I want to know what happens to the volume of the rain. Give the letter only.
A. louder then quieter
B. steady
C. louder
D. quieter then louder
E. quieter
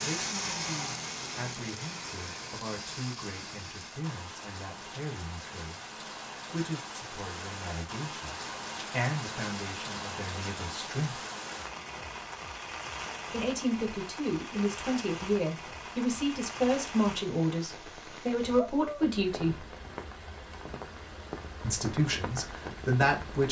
B.